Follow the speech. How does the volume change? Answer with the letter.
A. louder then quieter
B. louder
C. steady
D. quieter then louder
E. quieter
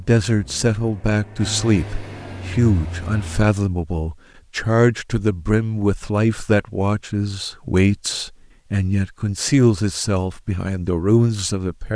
C.